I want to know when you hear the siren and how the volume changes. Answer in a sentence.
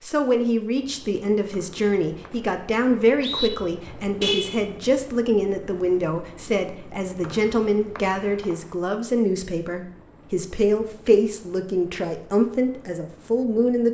The siren can't be heard in this clip.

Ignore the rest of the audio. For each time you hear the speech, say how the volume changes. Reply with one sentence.
You can hear the speech from 0.0 to 13.9 s, at a steady volume.